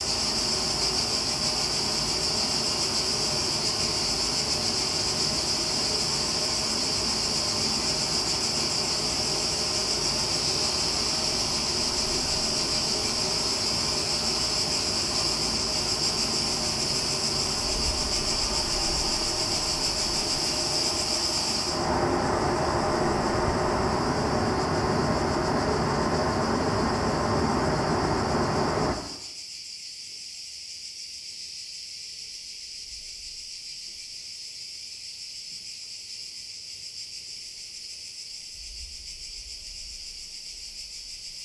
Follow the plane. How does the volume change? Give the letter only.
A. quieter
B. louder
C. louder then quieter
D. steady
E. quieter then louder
B.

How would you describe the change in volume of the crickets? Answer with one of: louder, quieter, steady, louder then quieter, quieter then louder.
quieter.